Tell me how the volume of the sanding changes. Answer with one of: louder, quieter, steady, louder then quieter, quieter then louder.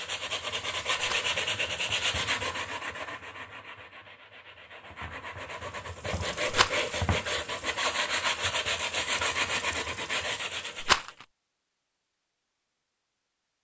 quieter then louder.